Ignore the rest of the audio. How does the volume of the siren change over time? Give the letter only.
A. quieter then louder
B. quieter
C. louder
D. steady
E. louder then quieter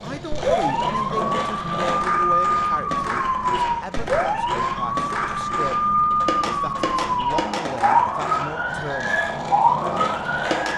D.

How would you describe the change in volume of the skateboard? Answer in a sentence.
The volume of the skateboard stays about the same.